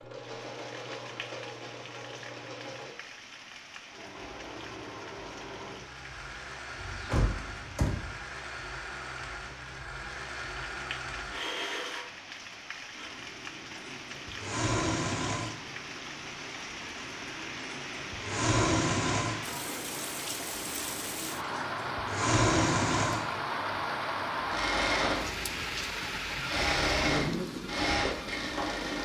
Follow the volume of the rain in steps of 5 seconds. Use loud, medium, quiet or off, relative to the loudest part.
quiet, quiet, medium, medium, loud, loud.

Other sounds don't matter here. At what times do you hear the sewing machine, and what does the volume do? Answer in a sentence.
You can hear the sewing machine briefly from 0.0 to 3.0 s; and from 3.9 to 29.0 s, getting louder.